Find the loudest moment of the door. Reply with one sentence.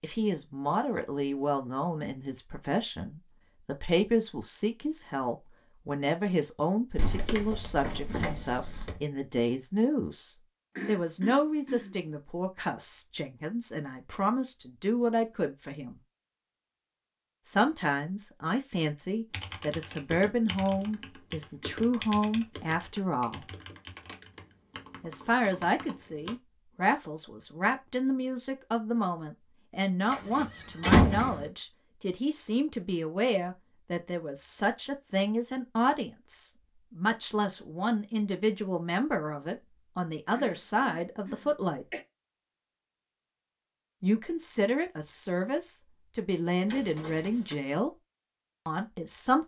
The volume of the door peaks at 31 seconds.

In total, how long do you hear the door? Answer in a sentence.
The door can be heard for 4 seconds in total.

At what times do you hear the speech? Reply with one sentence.
You can hear the speech from 0.0 to 16.0 s, from 17.4 to 23.4 s, from 25.0 to 42.0 s, from 44.0 to 47.9 s and from 48.6 to 49.4 s.